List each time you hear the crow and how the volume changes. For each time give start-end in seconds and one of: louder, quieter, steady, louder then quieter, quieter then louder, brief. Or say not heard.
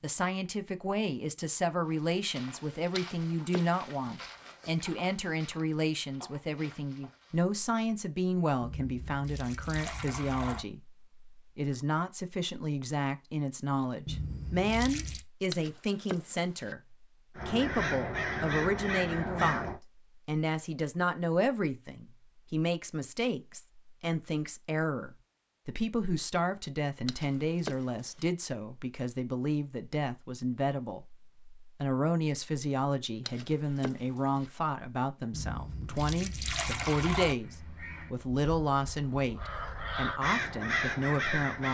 17.4-19.8 brief
37.4-41.6 quieter then louder.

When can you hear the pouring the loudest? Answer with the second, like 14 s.
37 s.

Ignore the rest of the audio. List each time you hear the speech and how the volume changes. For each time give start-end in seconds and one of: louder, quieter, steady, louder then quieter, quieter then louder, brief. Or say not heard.
0.0-41.6 steady.